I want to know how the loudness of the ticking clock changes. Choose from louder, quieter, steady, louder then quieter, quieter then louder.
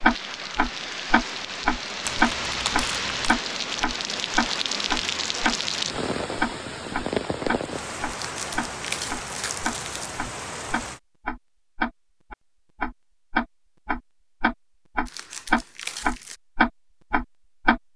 quieter then louder.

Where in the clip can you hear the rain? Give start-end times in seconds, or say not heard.
0.0-11.0.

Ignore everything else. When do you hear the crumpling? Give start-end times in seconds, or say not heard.
2.0-3.4, 8.1-10.1, 15.1-16.4.